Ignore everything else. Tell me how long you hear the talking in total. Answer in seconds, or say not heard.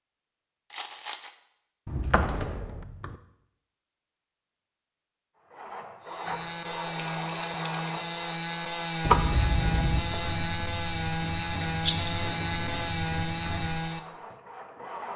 not heard.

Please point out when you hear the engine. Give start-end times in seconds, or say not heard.
5.5-15.1.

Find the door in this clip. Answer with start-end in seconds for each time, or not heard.
1.9-3.1, 9.1-10.2.